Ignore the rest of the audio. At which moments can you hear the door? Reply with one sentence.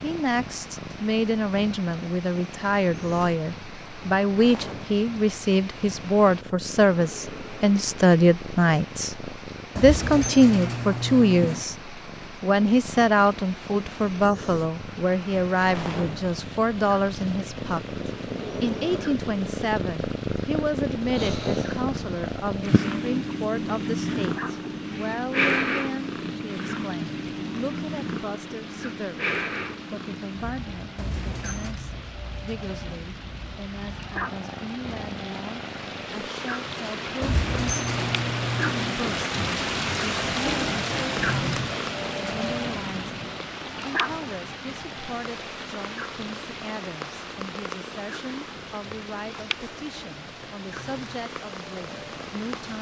You can hear the door from 9.8 to 11.7 s, from 30.9 to 31.8 s and from 37.2 to 39.0 s.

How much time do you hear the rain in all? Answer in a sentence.
You can hear the rain for 53 seconds altogether.